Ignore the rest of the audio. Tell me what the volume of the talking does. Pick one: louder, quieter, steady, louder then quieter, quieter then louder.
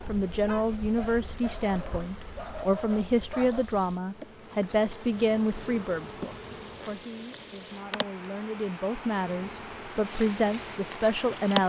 quieter then louder.